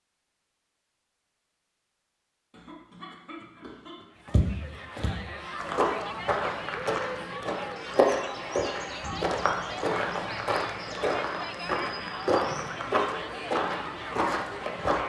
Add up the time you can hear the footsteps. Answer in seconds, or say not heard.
11 s.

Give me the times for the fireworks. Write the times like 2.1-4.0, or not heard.
not heard.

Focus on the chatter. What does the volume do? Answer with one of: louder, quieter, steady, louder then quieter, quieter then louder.
steady.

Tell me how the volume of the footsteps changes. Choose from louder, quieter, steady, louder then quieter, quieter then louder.
steady.